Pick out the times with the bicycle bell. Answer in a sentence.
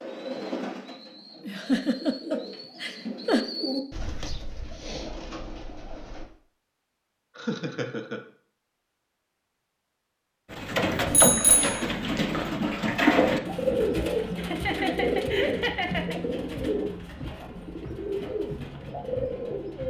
You can hear the bicycle bell from 11.1 to 11.8 s.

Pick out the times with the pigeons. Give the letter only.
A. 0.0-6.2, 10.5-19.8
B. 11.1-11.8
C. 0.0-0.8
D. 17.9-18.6
A.